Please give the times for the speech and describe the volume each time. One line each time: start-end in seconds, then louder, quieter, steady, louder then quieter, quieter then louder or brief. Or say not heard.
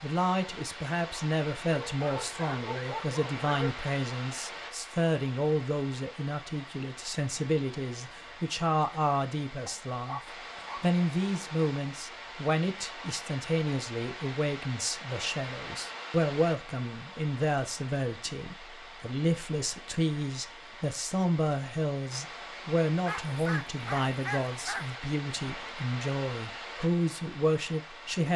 0.0-28.3 steady.